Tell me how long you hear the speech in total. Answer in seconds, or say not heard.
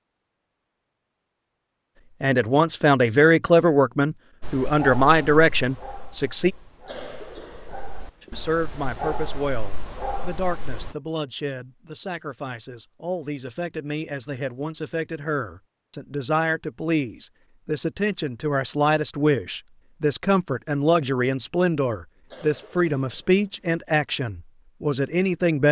22 s.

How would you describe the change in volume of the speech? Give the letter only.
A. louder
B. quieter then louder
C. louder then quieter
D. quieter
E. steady
B.